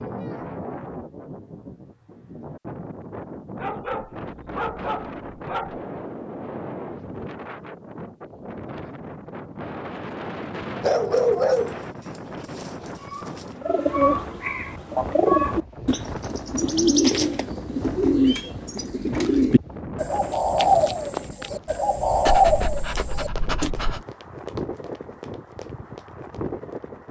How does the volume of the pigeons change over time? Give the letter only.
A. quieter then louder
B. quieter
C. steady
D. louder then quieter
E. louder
C.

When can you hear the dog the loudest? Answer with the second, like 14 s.
11 s.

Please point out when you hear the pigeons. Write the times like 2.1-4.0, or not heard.
13.1-23.7.